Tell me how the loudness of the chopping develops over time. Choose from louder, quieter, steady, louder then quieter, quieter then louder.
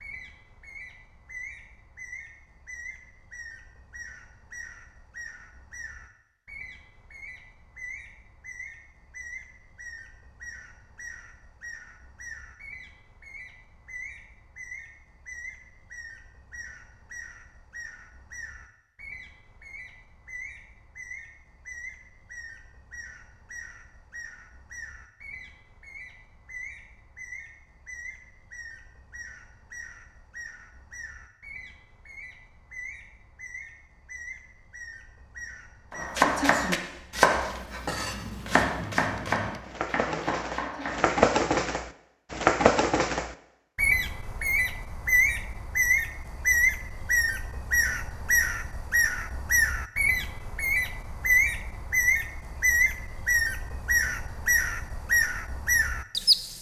quieter.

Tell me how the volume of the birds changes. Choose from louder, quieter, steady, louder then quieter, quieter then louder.
louder.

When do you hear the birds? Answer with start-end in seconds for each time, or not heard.
0.0-56.5.